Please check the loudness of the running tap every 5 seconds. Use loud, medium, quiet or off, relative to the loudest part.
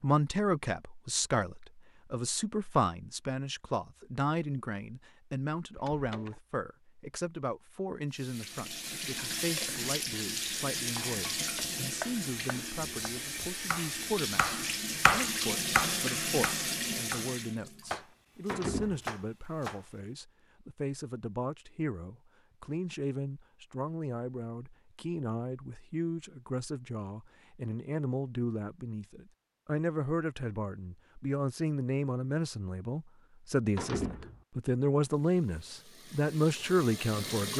off, loud, loud, loud, off, off, off, medium.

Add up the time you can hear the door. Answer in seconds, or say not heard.
2 s.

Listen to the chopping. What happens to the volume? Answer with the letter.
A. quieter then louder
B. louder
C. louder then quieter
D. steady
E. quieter
C.